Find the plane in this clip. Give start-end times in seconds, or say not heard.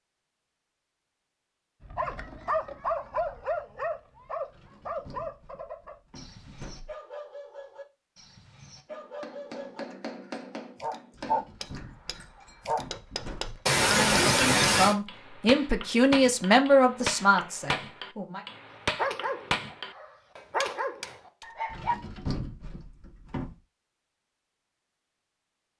not heard.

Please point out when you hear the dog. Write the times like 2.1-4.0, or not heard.
1.8-12.8, 18.9-21.9.